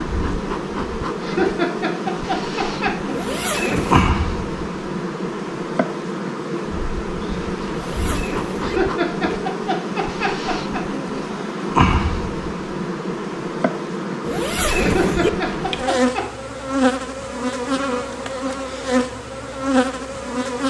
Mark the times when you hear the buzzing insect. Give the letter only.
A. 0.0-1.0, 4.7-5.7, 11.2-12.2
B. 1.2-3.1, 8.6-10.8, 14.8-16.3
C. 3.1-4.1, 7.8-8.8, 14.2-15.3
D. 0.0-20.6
D.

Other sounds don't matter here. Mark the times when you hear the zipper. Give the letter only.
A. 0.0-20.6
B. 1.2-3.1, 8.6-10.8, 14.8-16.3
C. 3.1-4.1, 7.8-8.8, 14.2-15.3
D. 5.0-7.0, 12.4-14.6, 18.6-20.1
C.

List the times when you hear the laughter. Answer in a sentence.
You can hear the laughter from 1.2 to 3.1 s, from 8.6 to 10.8 s and from 14.8 to 16.3 s.